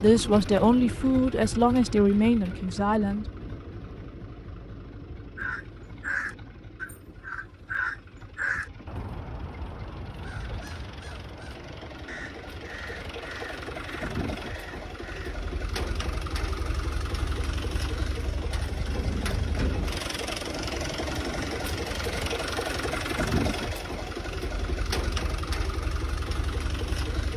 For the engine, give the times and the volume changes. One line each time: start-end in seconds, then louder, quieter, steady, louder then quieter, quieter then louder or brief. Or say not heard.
0.0-27.3 quieter then louder.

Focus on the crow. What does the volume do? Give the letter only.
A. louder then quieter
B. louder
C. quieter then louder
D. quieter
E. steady
D.